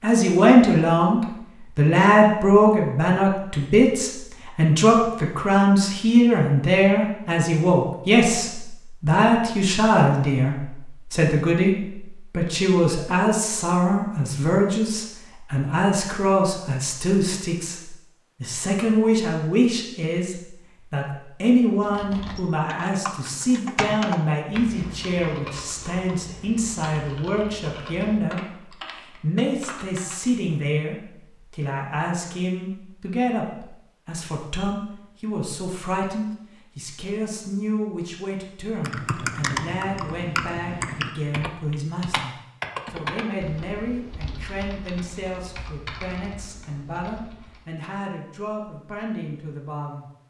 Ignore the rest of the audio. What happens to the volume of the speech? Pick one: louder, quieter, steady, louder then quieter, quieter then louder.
quieter.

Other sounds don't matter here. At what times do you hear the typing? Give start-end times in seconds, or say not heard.
21.8-30.3, 38.8-47.6.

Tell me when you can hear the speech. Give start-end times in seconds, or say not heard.
0.0-50.2.